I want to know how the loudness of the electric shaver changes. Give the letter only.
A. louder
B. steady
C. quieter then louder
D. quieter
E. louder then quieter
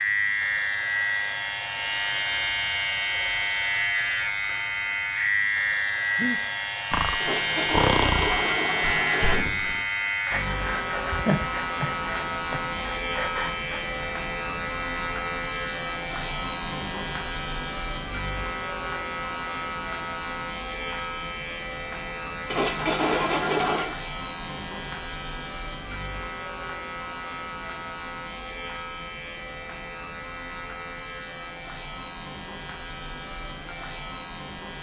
D.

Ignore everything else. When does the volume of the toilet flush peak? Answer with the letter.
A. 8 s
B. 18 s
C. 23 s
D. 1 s
C.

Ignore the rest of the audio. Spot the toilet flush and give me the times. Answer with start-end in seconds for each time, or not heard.
7.2-9.4, 22.5-23.9.